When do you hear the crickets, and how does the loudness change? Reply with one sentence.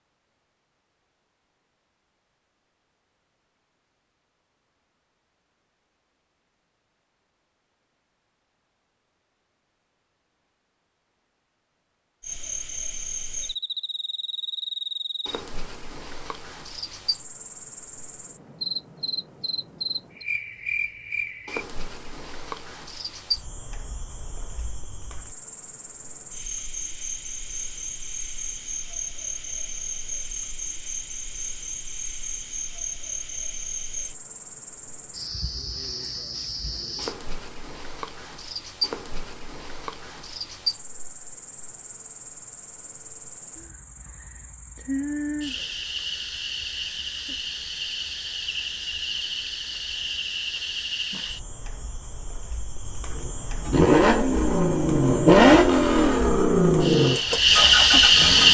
The crickets can be heard from 12.2 to 58.4 s, getting louder.